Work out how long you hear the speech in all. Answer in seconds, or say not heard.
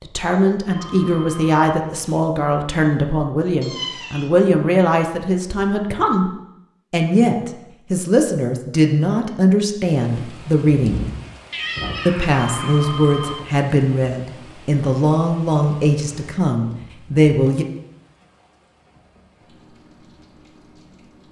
16 s.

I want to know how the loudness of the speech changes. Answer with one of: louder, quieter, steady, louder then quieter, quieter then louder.
steady.